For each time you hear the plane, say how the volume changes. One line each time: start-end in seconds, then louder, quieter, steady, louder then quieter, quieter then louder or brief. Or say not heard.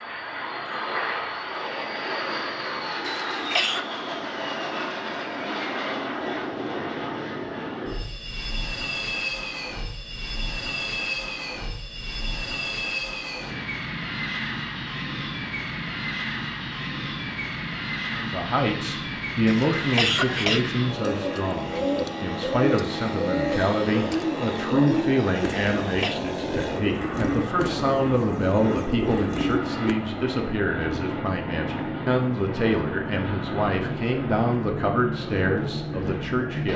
0.0-36.7 steady.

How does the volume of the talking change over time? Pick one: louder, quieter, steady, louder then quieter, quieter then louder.
steady.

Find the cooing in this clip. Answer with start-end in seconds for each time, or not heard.
21.0-29.9.